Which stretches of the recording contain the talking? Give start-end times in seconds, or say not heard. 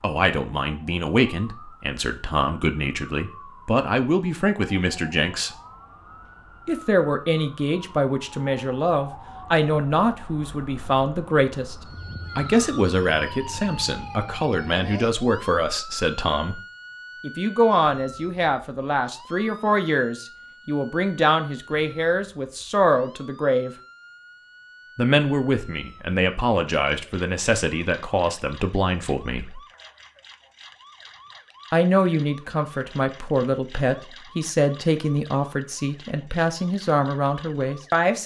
0.0-5.5, 6.7-11.8, 12.3-16.6, 17.2-23.7, 24.9-29.6, 31.7-38.2.